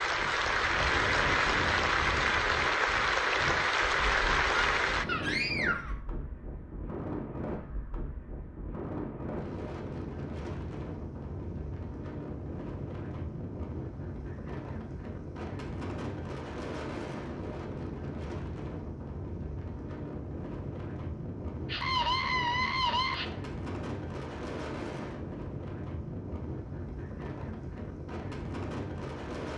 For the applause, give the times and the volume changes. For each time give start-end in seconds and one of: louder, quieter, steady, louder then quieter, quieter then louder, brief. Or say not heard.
0.0-5.0 steady.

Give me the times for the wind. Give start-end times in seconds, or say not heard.
0.0-29.5.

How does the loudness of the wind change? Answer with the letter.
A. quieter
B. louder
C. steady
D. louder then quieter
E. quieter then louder
C.